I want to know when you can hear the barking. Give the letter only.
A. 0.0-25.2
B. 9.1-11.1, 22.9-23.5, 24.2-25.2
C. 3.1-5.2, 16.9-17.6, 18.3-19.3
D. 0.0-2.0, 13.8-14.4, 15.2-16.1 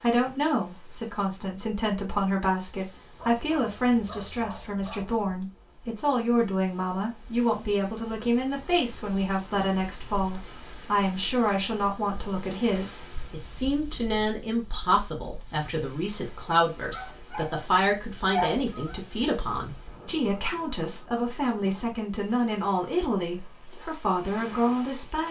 C.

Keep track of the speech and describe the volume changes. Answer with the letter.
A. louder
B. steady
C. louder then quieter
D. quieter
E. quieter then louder
B.